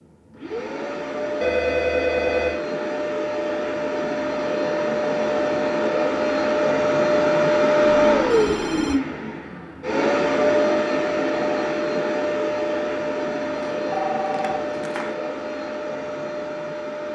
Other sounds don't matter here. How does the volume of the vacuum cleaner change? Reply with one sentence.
The loudness of the vacuum cleaner goes up, then down.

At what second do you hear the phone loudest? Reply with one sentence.
The loudest moment of the phone is at 2 seconds.